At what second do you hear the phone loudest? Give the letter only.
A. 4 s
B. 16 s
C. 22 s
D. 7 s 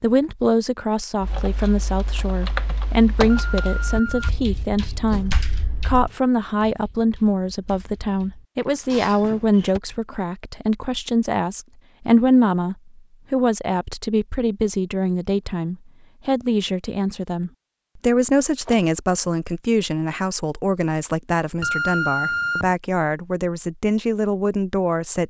C.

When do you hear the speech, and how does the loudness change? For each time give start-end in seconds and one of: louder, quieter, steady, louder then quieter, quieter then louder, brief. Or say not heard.
0.0-25.2 steady.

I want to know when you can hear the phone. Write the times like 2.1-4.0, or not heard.
3.2-4.4, 21.6-22.8.